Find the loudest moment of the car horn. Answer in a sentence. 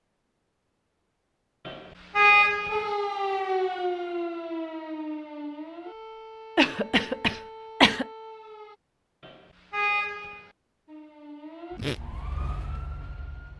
The volume of the car horn peaks at 2 seconds.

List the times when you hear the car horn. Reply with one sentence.
You can hear the car horn from 1.6 to 2.9 s and from 9.2 to 10.4 s.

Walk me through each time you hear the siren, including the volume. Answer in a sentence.
The siren can be heard from 2.6 to 8.8 s, getting quieter; and briefly from 10.8 to 13.5 s.